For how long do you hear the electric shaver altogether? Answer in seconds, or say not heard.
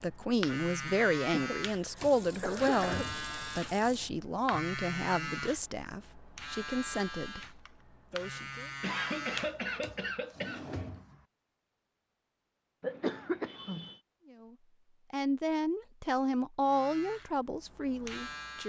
12 s.